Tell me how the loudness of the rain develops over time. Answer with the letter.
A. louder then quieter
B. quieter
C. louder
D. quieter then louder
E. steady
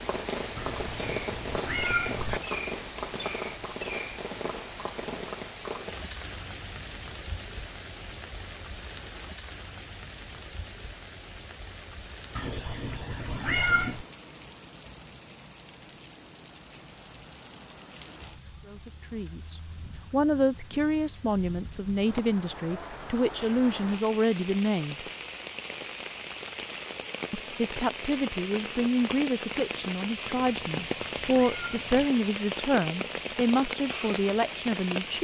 D.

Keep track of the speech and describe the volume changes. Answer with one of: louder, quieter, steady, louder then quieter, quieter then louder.
steady.